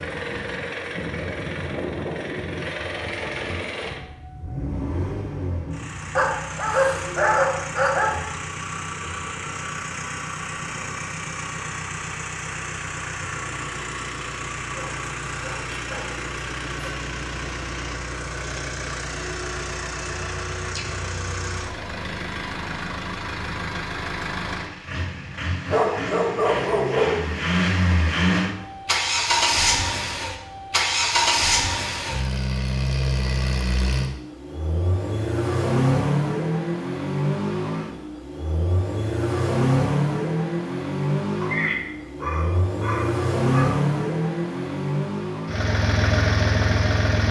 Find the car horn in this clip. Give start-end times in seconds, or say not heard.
not heard.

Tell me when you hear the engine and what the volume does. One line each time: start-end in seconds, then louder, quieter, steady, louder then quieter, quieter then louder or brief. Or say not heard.
0.0-47.2 louder.